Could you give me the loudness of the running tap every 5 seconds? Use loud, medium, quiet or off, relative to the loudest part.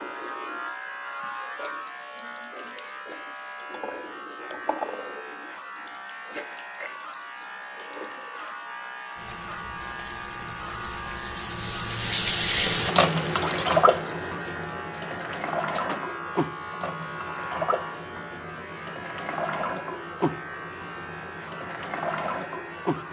quiet, quiet, loud, medium, medium.